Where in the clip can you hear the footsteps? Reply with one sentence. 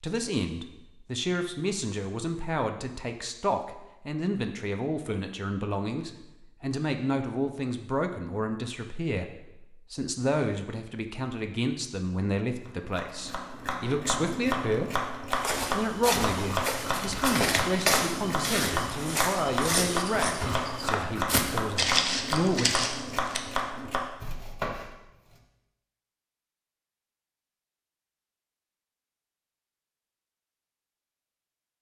You can hear the footsteps from 15.3 to 23.4 s.